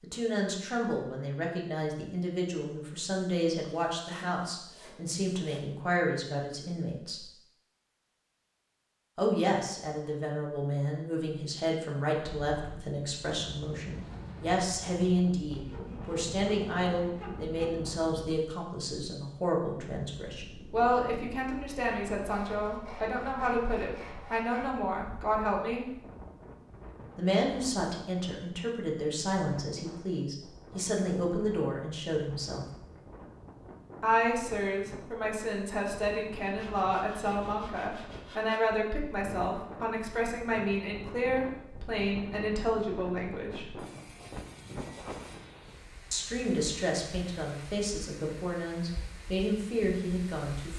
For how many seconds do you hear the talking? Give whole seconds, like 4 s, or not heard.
44 s.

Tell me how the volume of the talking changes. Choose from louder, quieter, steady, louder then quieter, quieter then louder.
steady.